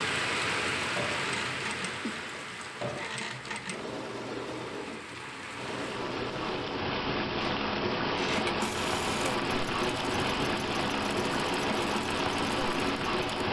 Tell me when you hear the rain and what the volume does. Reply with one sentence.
You can hear the rain from 0.0 to 13.4 s, getting quieter then louder.